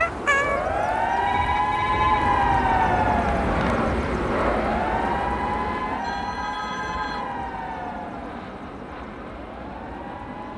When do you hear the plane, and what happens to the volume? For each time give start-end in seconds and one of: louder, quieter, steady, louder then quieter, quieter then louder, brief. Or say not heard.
0.0-10.5 louder then quieter.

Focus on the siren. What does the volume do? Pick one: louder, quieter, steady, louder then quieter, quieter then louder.
quieter.